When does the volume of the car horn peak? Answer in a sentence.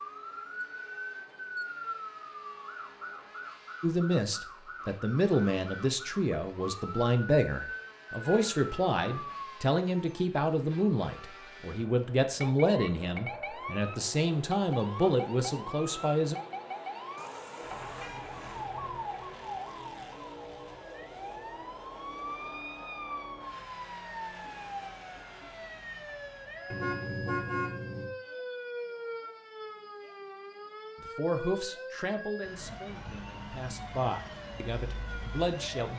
The loudest moment of the car horn is at 27 seconds.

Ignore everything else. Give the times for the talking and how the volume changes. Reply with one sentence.
The talking can be heard from 3.8 to 16.4 s, at a steady volume; and from 31.0 to 35.9 s, getting quieter then louder.